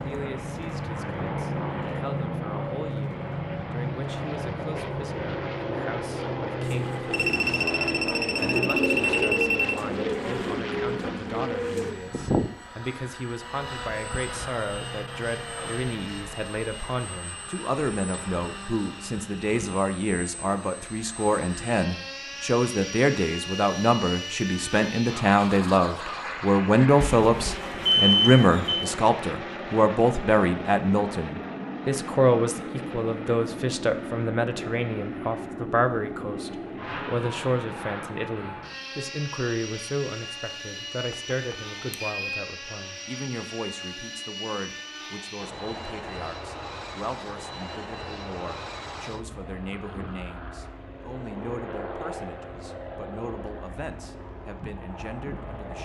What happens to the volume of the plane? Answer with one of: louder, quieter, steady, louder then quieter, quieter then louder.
quieter.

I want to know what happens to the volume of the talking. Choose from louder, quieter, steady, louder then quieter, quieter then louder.
louder then quieter.